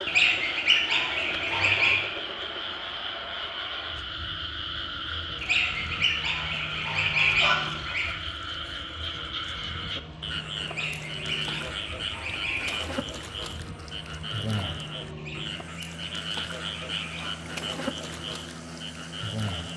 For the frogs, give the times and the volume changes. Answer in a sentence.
The frogs can be heard from 0.0 to 19.7 s, at a steady volume.